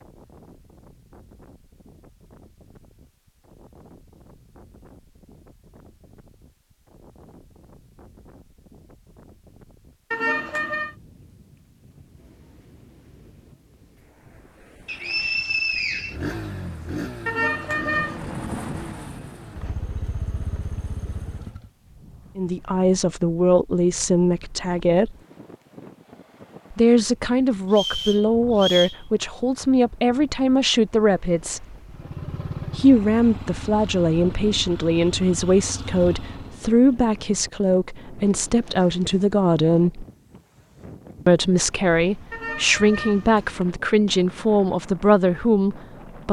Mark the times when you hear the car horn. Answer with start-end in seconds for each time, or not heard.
10.1-10.9, 17.2-18.2, 42.3-43.7.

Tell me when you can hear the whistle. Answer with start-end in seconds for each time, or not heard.
14.8-16.1, 27.7-29.0.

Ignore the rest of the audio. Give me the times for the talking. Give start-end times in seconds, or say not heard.
22.4-25.1, 26.7-31.8, 32.8-40.0, 41.2-46.2.